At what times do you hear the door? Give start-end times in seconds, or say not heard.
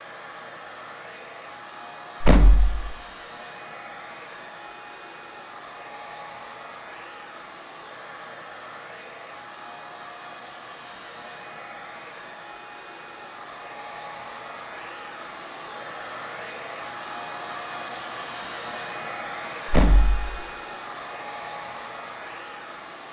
2.2-3.0, 19.6-20.4.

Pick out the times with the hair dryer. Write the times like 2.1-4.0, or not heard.
0.0-23.0.